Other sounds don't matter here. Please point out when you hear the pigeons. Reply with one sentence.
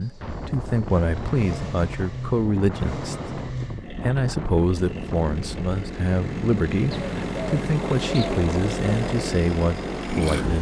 You can hear the pigeons from 6.9 to 8.4 s.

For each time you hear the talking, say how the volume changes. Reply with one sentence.
The talking can be heard from 0.0 to 10.5 s, at a steady volume.